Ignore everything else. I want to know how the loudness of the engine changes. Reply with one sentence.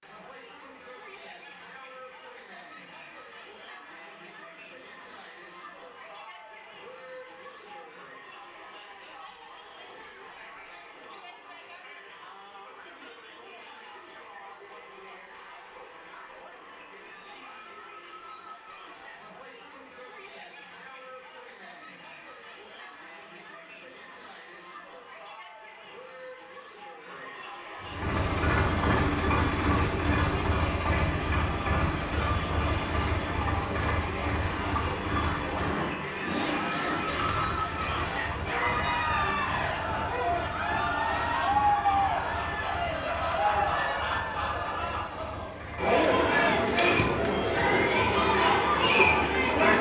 The volume of the engine goes down.